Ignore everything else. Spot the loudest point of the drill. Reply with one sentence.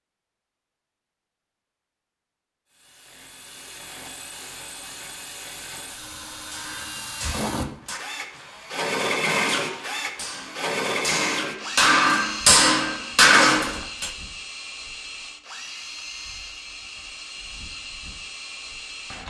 The loudest moment of the drill is at 9 seconds.